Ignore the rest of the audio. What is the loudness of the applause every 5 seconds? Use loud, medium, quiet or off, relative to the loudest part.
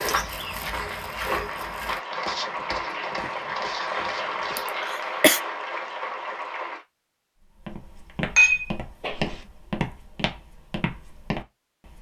loud, loud, off.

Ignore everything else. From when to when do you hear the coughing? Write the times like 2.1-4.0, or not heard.
4.5-5.4.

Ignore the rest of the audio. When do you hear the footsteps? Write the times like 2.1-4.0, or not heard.
0.0-4.9, 7.6-11.9.